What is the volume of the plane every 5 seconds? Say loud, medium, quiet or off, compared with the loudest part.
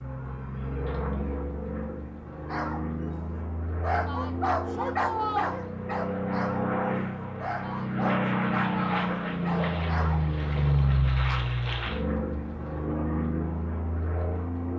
medium, loud, loud.